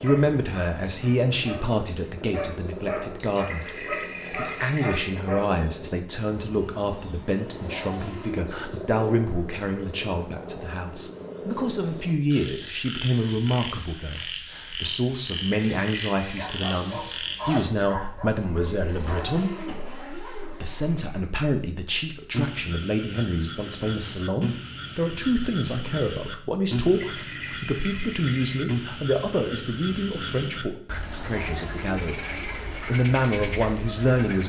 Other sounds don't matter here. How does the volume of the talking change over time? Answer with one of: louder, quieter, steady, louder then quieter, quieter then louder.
steady.